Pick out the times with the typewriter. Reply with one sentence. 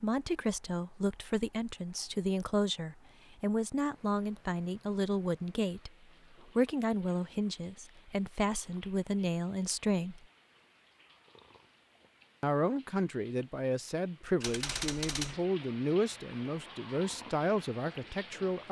The typewriter can be heard from 14.4 to 15.4 s.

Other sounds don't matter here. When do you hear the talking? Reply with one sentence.
The talking can be heard from 0.0 to 5.9 s, from 6.5 to 10.2 s and from 12.4 to 18.6 s.